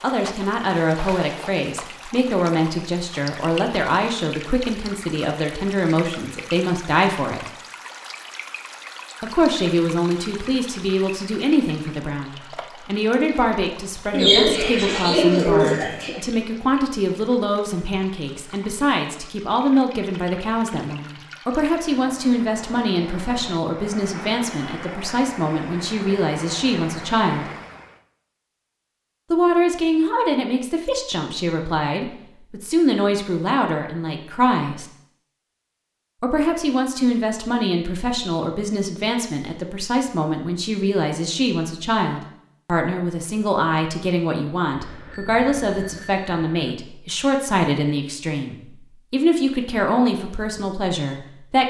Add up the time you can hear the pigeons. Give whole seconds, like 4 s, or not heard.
2 s.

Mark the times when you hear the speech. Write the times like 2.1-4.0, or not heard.
0.0-7.5, 9.2-27.5, 29.3-34.9, 36.2-51.6.